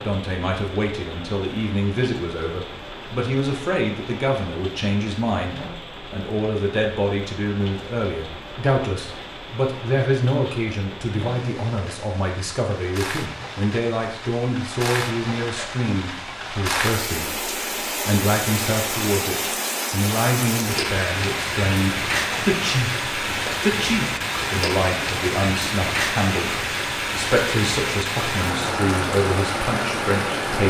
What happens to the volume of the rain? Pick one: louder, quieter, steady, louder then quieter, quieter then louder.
louder.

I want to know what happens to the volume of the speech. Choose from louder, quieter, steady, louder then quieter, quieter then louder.
steady.